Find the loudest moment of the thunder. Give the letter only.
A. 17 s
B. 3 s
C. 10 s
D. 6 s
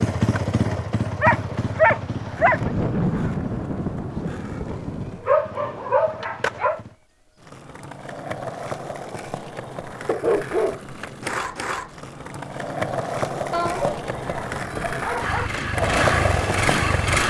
B.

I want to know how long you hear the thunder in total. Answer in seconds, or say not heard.
3 s.